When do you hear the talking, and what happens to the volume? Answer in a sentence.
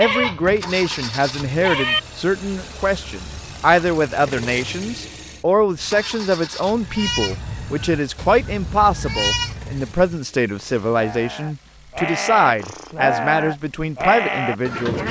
You can hear the talking from 0.0 to 15.0 s, at a steady volume.